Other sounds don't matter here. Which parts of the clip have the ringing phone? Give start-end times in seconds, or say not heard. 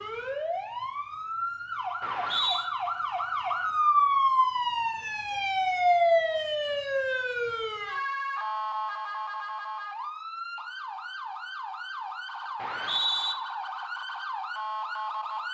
not heard.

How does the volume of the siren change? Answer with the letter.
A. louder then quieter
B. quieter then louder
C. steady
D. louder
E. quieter
A.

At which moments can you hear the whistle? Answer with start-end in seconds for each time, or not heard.
2.0-2.7, 12.6-13.3.